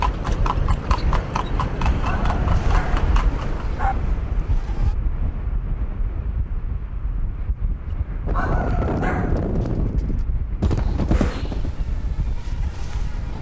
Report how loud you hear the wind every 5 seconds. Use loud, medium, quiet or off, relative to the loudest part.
loud, medium, medium.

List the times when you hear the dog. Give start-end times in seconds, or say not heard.
2.0-4.0, 8.3-9.8.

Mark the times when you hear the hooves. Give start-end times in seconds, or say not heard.
0.0-3.6, 7.9-11.7.